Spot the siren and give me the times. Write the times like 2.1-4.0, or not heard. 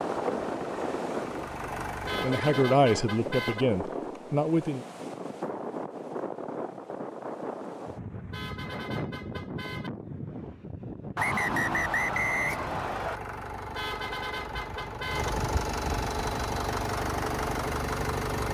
not heard.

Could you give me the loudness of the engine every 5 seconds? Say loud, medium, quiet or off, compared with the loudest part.
medium, off, medium, loud.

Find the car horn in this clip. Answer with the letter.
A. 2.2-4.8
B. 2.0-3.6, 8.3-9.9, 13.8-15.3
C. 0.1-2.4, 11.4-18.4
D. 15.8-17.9
B.